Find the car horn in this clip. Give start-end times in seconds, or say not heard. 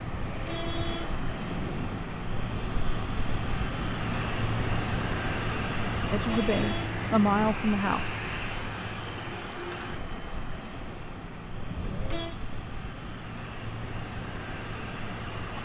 0.1-2.0, 6.1-7.6, 11.7-12.4.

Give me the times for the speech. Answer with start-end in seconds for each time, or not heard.
6.1-8.2.